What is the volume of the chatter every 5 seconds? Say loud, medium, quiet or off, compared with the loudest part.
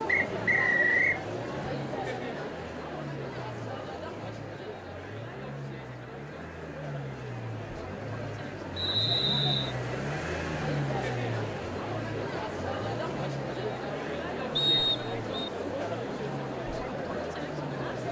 loud, medium, loud, loud.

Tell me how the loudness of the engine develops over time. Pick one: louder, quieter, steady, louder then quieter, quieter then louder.
louder then quieter.